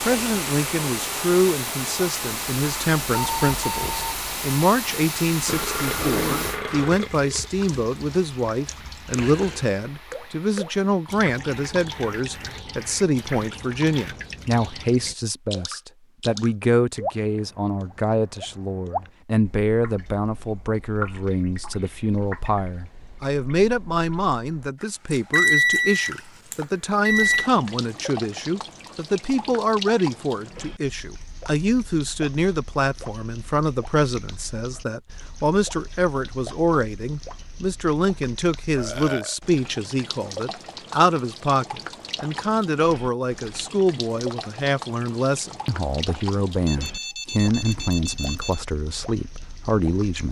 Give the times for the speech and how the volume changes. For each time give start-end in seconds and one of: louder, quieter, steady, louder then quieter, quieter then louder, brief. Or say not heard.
0.1-50.2 steady.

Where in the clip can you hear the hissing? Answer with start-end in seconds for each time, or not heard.
0.0-14.3.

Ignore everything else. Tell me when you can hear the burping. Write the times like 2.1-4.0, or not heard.
5.5-7.5, 38.8-39.4.